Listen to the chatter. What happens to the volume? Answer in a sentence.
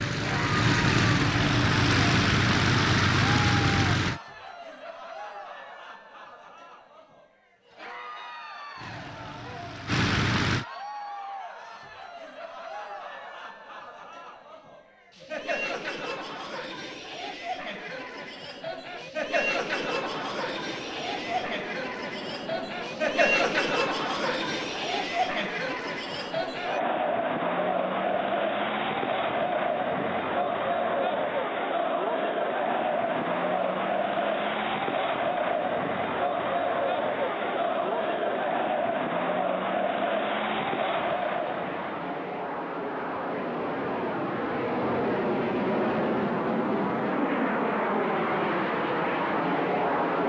The volume of the chatter goes up.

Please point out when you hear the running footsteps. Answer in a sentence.
The running footsteps can't be heard in this clip.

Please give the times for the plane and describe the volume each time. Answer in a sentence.
The plane can be heard from 0.0 to 4.2 s, at a steady volume; briefly from 8.8 to 10.7 s; and from 19.9 to 50.2 s, getting louder.